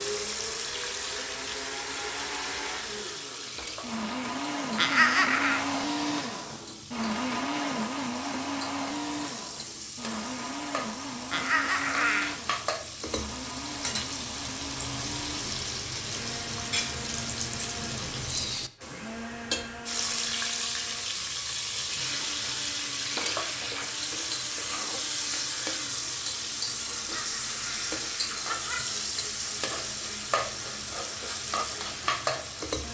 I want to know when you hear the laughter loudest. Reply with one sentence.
The volume of the laughter peaks at 5 seconds.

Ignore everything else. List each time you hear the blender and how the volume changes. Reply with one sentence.
The blender can be heard from 0.0 to 32.8 s, getting quieter.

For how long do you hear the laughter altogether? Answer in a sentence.
The laughter can be heard for 4 seconds in total.